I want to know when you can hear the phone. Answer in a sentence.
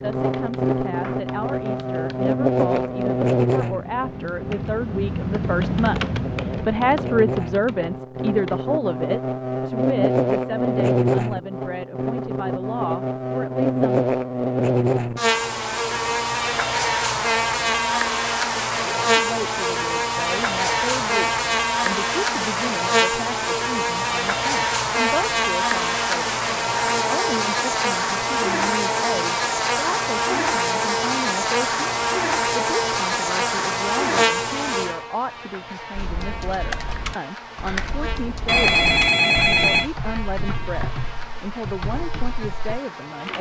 The phone can be heard from 38.5 to 39.9 s.